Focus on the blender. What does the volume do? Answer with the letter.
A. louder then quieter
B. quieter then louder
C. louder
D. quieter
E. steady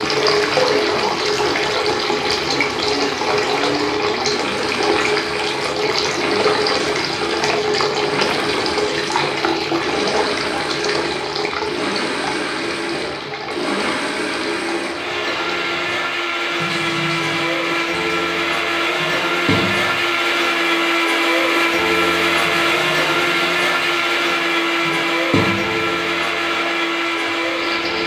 C.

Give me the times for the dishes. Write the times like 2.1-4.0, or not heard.
not heard.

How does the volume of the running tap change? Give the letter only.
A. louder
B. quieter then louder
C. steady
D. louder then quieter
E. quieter
E.